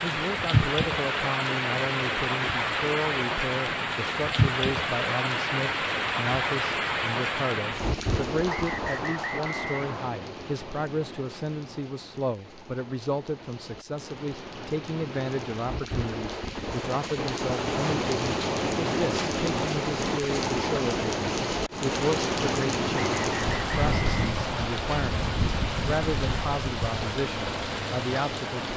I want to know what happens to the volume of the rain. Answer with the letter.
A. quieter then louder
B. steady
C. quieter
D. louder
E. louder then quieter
A.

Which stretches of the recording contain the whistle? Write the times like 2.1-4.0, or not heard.
8.4-10.1, 22.9-24.9.